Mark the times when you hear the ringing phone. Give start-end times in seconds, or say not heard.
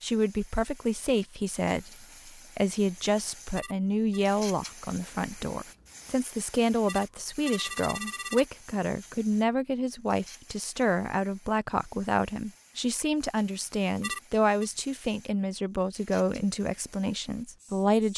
3.5-4.2, 6.8-8.4, 14.0-14.7.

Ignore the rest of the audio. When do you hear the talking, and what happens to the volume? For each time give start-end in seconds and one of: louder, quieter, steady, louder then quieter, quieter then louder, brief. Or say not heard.
0.0-18.1 steady.